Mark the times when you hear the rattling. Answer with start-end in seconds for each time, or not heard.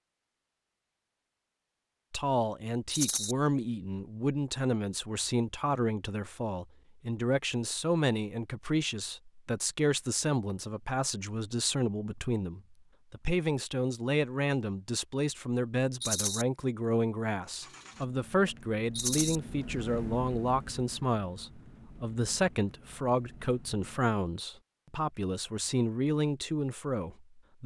2.9-3.4, 16.0-16.4, 18.9-19.4.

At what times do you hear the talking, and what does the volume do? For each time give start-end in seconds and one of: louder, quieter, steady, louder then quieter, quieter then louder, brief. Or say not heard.
2.1-27.6 steady.